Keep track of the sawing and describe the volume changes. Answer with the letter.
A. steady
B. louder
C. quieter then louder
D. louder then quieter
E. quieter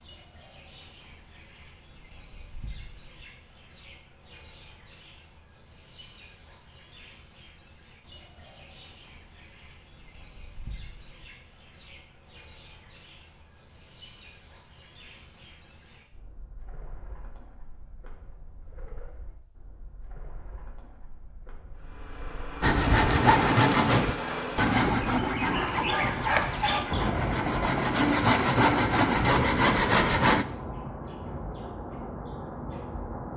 C.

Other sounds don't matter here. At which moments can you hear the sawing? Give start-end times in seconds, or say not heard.
22.6-30.4.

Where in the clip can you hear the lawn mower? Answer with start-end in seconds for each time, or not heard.
21.8-24.8.